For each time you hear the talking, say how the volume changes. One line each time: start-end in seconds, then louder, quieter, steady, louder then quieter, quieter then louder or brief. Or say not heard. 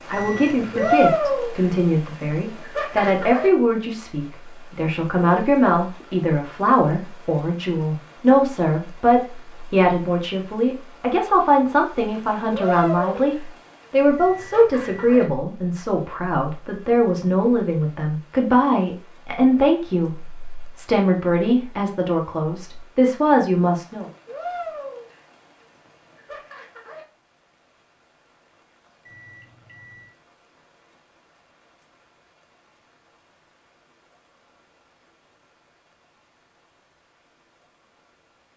0.1-24.1 steady.